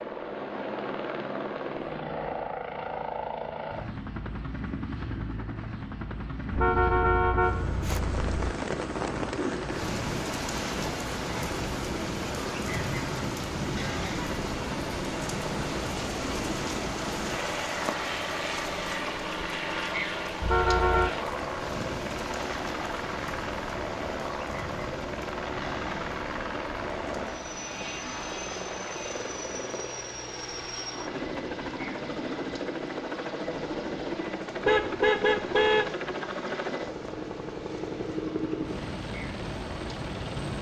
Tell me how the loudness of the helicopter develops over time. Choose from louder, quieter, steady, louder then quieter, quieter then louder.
steady.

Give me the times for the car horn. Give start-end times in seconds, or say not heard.
6.5-8.3, 20.4-21.1, 34.6-36.0.